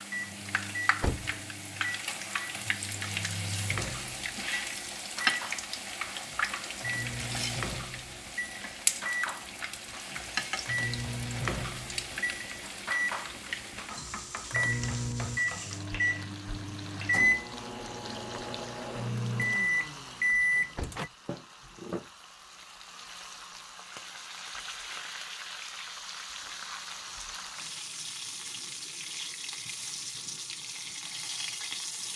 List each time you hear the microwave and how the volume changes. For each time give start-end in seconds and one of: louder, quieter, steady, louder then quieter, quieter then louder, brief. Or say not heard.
0.1-21.1 louder.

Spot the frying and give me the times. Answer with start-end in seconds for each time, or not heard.
0.0-32.1.